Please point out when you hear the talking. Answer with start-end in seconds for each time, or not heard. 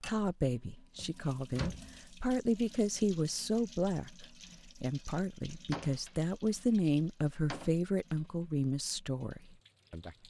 0.1-10.2.